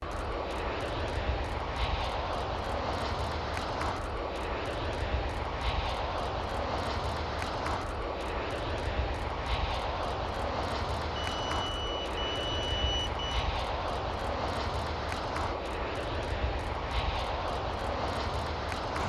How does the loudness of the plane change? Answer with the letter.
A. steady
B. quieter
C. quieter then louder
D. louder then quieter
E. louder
A.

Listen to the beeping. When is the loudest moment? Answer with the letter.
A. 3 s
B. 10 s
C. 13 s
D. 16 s
C.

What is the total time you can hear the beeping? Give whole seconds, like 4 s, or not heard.
2 s.